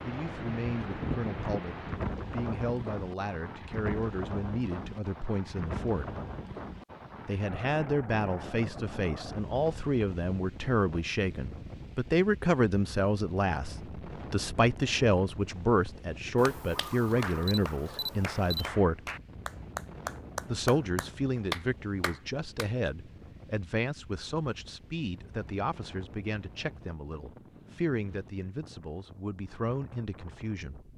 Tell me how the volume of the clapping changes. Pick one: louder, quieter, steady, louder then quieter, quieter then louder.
louder.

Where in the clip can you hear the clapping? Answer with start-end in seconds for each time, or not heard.
16.4-22.7.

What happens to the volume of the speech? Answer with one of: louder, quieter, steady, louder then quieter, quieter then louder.
louder then quieter.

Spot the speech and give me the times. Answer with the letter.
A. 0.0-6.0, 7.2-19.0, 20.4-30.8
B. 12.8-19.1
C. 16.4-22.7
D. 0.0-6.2
A.